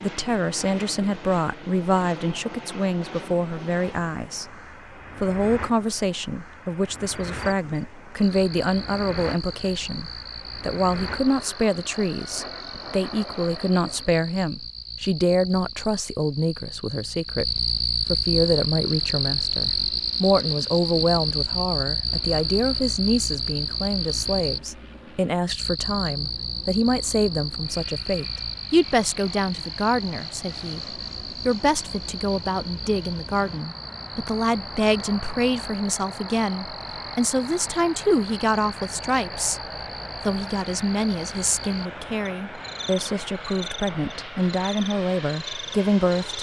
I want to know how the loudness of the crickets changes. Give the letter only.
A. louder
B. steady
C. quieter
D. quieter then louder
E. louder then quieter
E.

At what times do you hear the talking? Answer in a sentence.
You can hear the talking from 0.0 to 4.5 s, from 5.2 to 39.6 s and from 40.2 to 46.3 s.